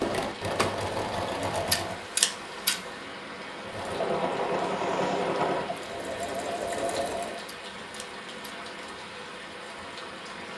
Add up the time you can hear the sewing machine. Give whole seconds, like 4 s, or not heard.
6 s.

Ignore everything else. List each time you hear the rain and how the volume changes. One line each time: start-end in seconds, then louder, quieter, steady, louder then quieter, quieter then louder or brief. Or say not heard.
0.0-10.5 steady.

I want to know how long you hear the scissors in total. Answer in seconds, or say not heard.
2 s.